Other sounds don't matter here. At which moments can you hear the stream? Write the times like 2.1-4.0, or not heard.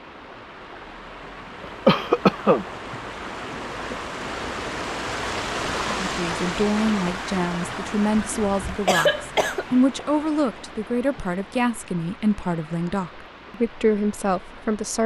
0.0-15.0.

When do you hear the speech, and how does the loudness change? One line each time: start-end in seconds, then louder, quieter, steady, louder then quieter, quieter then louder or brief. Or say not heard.
5.8-15.0 steady.